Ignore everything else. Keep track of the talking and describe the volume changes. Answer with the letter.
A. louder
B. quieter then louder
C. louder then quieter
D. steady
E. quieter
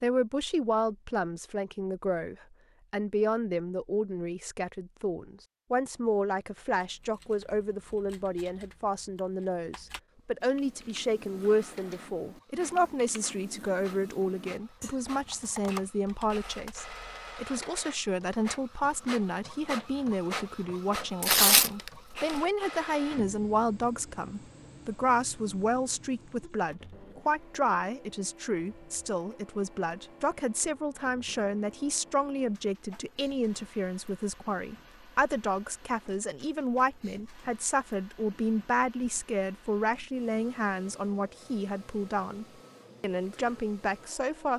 D.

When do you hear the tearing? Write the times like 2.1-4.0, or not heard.
21.2-22.4.